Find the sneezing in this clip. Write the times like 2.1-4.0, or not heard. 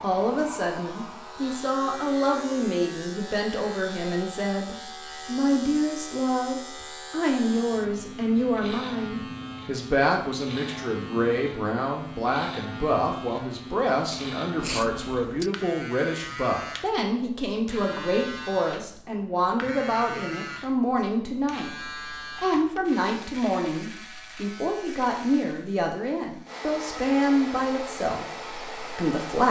14.6-15.5.